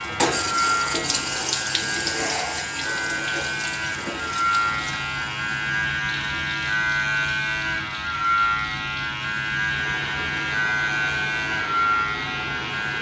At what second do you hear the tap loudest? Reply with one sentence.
The volume of the tap peaks at 1 second.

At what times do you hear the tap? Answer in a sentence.
You can hear the tap from 0.0 to 12.9 s.